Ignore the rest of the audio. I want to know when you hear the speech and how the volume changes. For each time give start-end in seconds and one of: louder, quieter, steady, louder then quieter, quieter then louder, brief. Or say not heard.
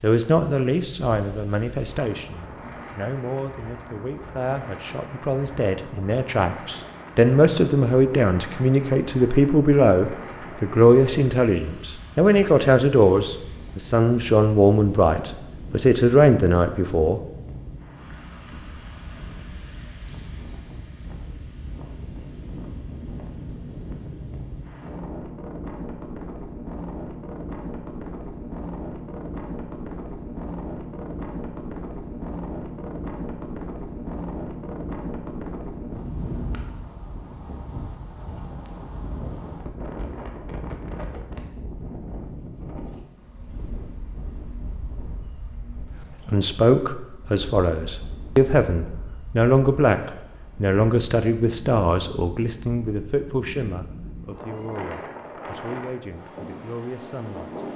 0.0-17.2 louder
46.2-57.6 quieter.